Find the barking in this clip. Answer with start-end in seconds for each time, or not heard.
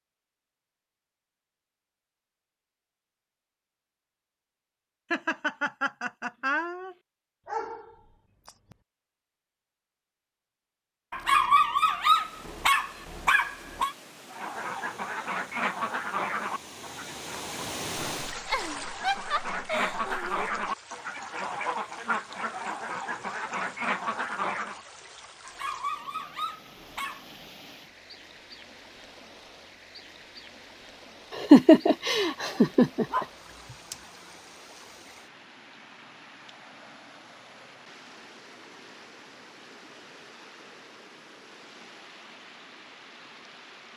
7.5-8.8, 11.1-13.9, 25.4-27.2, 33.0-34.0.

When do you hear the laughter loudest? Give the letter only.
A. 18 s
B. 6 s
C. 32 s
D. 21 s
C.